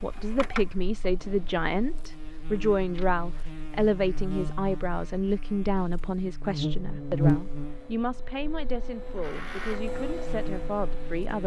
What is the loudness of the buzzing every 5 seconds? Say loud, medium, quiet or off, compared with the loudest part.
medium, loud, medium.